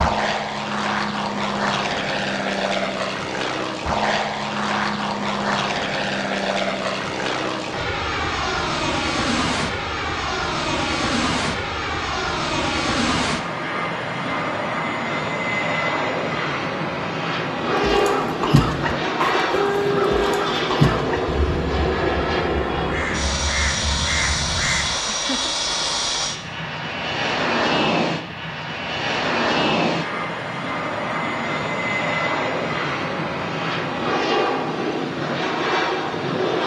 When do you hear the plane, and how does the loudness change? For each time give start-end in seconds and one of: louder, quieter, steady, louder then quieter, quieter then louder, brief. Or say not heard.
0.0-36.6 steady.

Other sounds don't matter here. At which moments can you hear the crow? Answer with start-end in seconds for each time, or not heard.
17.6-24.9.